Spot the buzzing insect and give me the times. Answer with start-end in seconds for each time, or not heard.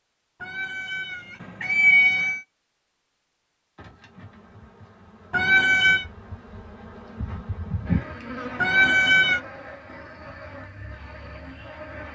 3.8-12.0.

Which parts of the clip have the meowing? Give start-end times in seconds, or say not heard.
0.4-2.4, 5.3-6.0, 8.6-9.4.